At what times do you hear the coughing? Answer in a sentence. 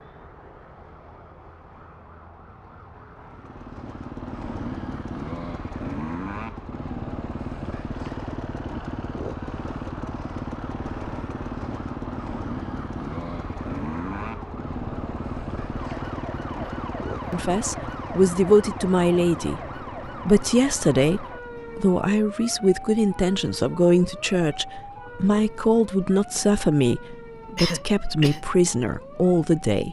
You can hear the coughing from 27.1 to 28.4 s.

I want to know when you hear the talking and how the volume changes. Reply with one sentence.
The talking can be heard from 17.3 to 29.8 s, at a steady volume.